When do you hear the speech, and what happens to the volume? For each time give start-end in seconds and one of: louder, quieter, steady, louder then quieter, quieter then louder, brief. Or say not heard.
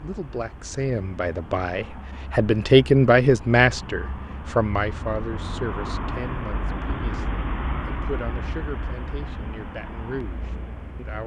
0.0-11.2 louder then quieter.